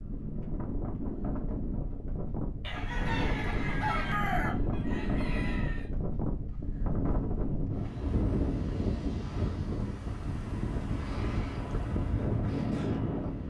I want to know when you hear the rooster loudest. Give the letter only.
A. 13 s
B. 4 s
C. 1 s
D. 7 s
B.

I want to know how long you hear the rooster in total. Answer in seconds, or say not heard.
3 s.